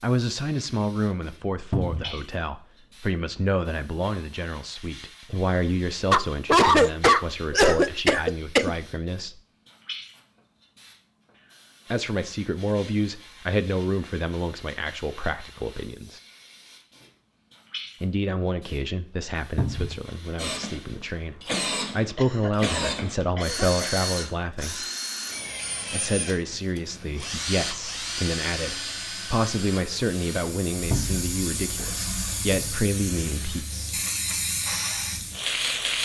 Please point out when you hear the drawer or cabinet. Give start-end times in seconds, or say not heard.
1.7-2.1, 19.6-20.0, 30.9-31.3.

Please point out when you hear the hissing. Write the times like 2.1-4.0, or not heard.
0.0-21.3, 25.2-36.0.